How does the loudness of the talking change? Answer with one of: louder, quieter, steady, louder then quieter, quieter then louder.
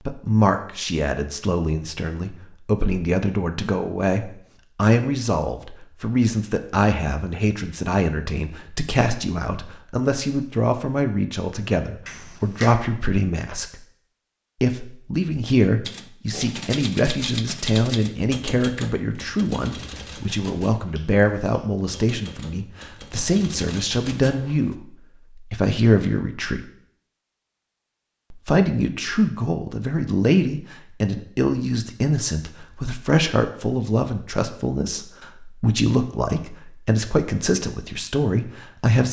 steady.